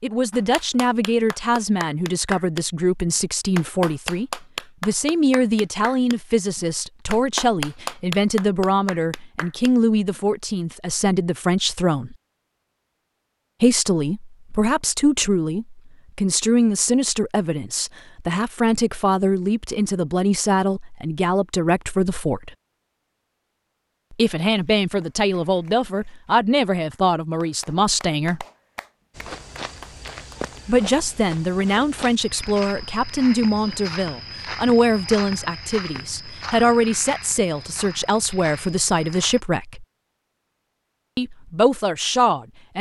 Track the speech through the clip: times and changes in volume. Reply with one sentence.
The speech can be heard from 0.0 to 12.2 s, at a steady volume; from 13.6 to 22.5 s, at a steady volume; from 24.1 to 28.4 s, at a steady volume; from 30.6 to 39.9 s, at a steady volume; and briefly from 41.1 to 42.7 s.